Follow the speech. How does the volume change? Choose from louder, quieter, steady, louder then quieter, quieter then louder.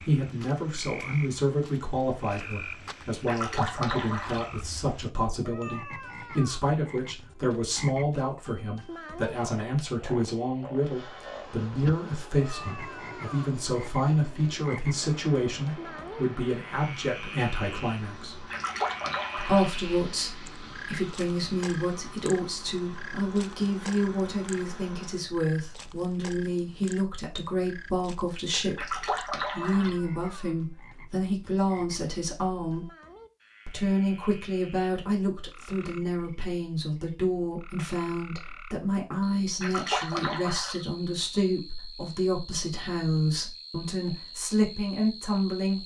steady.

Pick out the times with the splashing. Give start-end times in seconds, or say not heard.
3.2-4.5, 18.5-19.7, 28.8-30.0, 39.6-40.8.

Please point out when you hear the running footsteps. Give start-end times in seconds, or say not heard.
not heard.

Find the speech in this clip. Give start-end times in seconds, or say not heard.
0.1-18.5, 19.4-32.9, 33.6-45.8.